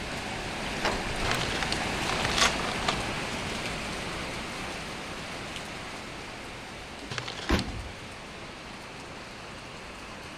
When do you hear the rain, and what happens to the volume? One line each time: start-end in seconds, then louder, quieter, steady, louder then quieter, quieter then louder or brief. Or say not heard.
0.0-10.3 quieter.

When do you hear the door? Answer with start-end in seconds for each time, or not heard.
0.8-1.4, 7.0-8.0.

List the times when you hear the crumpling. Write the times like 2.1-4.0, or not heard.
1.2-3.1, 7.1-7.7.